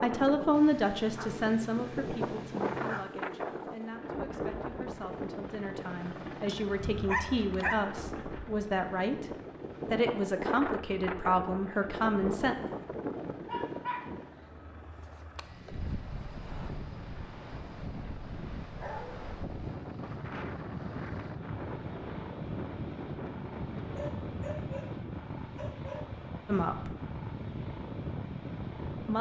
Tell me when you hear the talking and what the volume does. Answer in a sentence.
You can hear the talking from 0.0 to 9.3 s, getting quieter then louder; briefly from 9.9 to 12.6 s; and briefly from 26.4 to 26.9 s.